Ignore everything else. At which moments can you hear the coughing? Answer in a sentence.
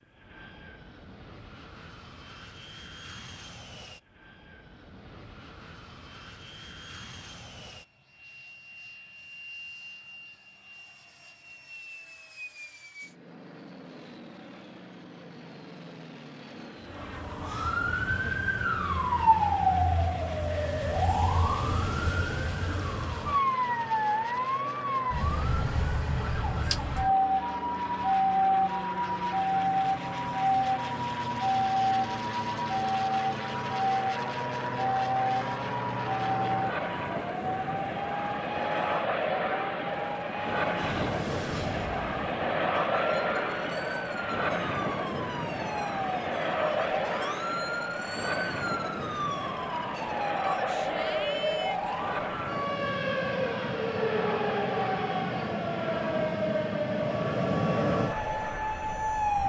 You can't hear the coughing here.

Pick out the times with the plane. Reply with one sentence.
The plane can be heard from 0.0 to 59.4 s.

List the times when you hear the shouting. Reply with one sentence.
The shouting can be heard from 50.4 to 52.0 s.